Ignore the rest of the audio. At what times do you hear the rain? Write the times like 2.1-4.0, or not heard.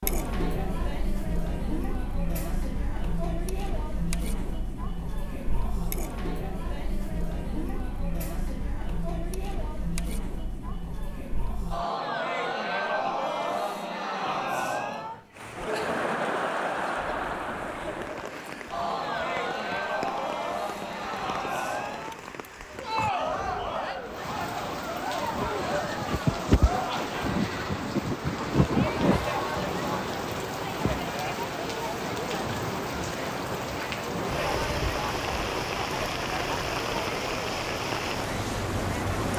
15.3-39.3.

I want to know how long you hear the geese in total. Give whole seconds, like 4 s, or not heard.
not heard.